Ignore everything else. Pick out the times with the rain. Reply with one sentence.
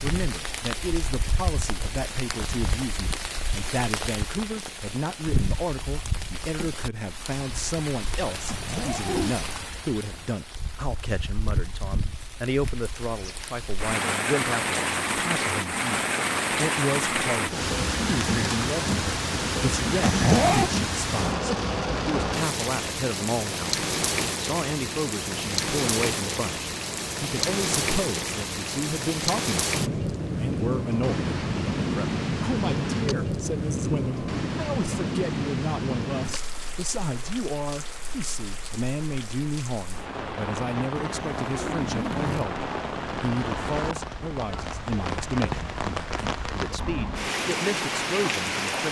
The rain can be heard from 0.0 to 48.8 s.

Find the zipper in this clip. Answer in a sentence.
You can hear the zipper from 8.4 to 9.3 s, from 20.0 to 20.7 s and from 41.0 to 42.5 s.